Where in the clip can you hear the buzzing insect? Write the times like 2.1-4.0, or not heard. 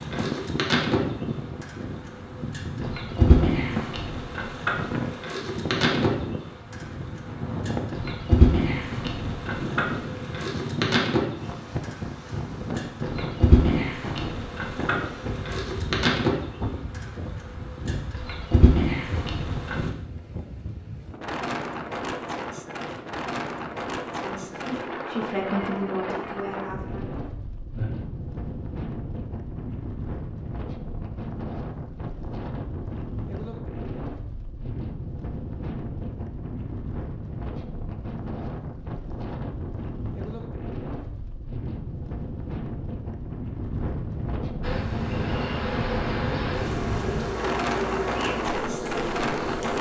0.0-19.9, 44.6-49.7.